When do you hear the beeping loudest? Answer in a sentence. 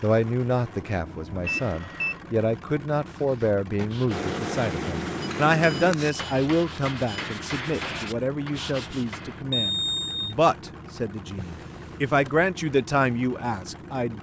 The loudest moment of the beeping is at 10 seconds.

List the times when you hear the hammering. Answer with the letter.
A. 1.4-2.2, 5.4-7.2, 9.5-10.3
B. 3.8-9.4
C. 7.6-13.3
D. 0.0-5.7
B.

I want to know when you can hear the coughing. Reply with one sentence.
You can't hear the coughing here.